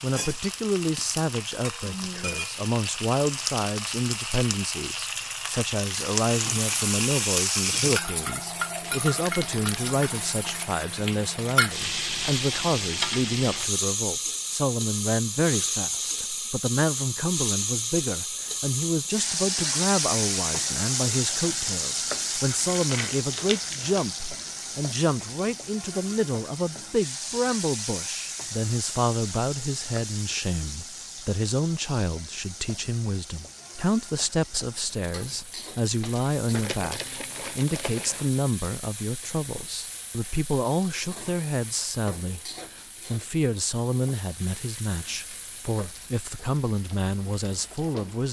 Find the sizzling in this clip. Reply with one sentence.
The sizzling can be heard from 0.0 to 48.2 s.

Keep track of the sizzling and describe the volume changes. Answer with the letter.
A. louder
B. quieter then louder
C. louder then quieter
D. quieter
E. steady
D.